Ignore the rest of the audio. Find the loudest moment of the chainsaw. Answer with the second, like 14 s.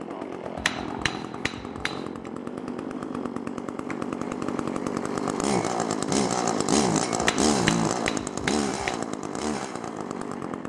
7 s.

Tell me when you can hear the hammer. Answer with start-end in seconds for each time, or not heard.
0.6-2.2, 7.2-9.0.